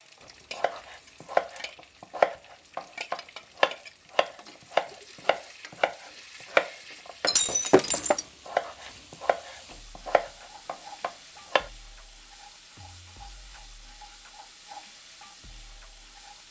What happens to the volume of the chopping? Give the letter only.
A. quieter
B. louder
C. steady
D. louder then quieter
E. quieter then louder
A.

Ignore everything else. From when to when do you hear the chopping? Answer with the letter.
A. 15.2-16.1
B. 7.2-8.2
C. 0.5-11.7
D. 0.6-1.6
C.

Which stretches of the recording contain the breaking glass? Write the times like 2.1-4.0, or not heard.
7.2-8.2.